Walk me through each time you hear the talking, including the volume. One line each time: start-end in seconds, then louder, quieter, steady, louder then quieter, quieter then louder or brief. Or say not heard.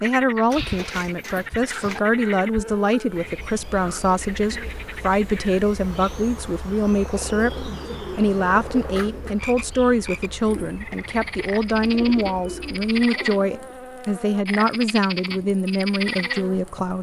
0.0-16.9 steady.